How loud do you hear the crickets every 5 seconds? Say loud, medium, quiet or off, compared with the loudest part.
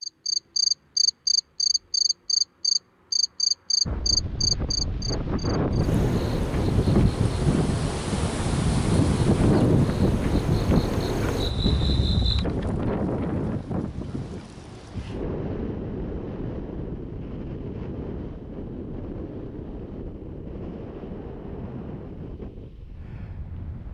loud, medium, medium, off, off.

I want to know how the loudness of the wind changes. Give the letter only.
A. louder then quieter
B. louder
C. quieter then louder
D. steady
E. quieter
E.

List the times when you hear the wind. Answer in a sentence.
The wind can be heard from 3.9 to 23.9 s.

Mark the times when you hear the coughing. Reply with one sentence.
You can't hear the coughing here.